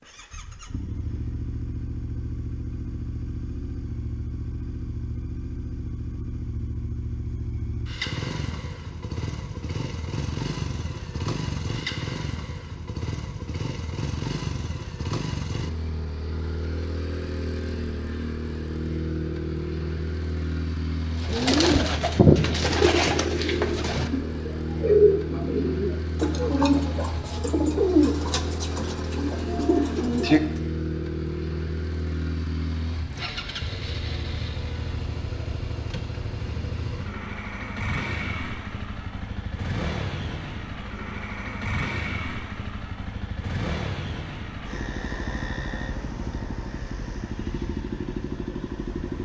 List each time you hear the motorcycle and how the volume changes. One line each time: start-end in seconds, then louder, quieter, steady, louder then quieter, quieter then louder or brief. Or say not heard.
0.0-49.2 steady.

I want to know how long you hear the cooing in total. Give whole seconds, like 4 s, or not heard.
9 s.